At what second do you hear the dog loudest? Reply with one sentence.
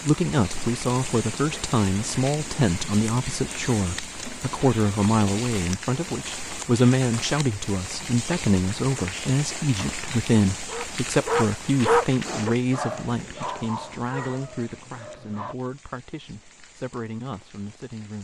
The volume of the dog peaks at 12 seconds.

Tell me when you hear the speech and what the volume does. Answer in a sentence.
The speech can be heard from 0.0 to 18.1 s, getting quieter.